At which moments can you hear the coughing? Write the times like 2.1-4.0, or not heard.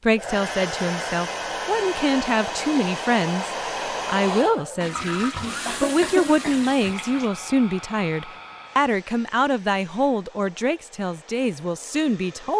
5.4-7.0.